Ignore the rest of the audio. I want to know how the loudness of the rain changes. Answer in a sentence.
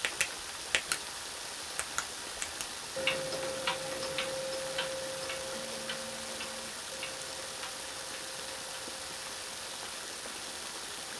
The loudness of the rain stays about the same.